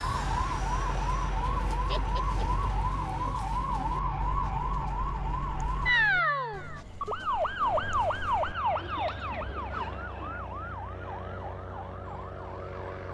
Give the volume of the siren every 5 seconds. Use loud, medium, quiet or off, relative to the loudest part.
loud, loud, quiet.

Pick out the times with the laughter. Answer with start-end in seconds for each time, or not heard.
1.9-2.6.